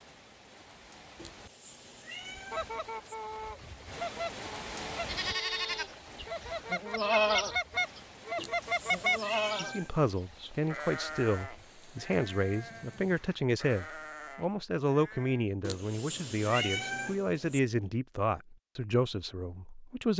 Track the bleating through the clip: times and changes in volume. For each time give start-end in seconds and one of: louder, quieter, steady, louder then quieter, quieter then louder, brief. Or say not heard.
5.0-15.4 quieter.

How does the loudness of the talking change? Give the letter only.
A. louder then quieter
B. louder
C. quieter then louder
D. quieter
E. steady
E.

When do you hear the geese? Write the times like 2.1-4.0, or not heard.
2.5-9.2.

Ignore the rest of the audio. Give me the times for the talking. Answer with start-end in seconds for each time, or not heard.
9.6-20.1.